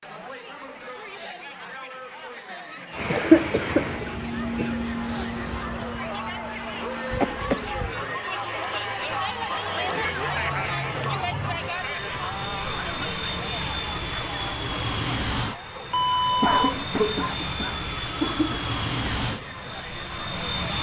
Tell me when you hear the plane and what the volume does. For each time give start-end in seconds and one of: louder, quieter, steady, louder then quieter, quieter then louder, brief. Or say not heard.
2.9-20.7 quieter then louder.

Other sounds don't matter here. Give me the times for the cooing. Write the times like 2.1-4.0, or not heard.
not heard.